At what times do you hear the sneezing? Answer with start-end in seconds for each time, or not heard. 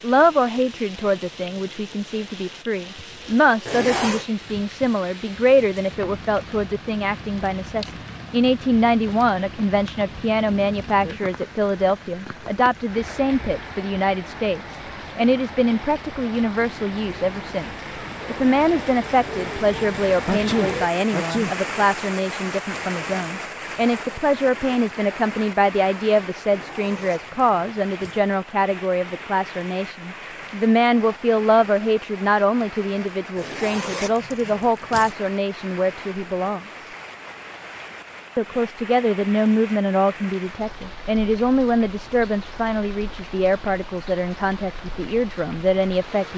20.2-21.6.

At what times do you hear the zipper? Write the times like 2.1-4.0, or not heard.
3.6-4.2, 26.4-28.2, 33.4-35.1.